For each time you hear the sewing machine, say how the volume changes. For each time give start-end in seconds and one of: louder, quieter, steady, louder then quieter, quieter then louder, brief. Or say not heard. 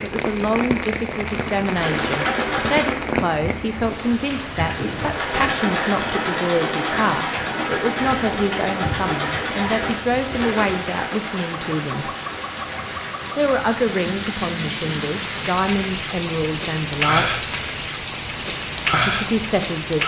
1.6-14.8 quieter.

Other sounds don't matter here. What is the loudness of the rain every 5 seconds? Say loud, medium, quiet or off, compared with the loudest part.
loud, medium, medium, loud.